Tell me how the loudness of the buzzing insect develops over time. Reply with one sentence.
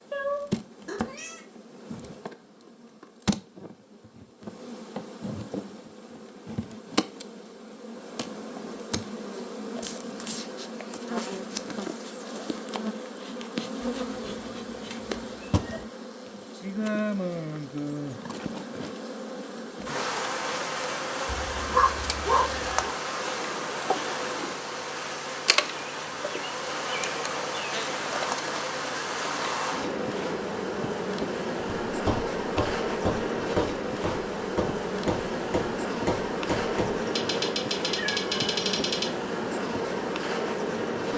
The volume of the buzzing insect goes up.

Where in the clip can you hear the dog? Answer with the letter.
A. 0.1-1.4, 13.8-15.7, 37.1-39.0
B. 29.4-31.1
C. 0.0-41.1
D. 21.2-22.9
D.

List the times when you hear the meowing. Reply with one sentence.
The meowing can be heard from 0.1 to 1.4 s, from 13.8 to 15.7 s and from 37.1 to 39.0 s.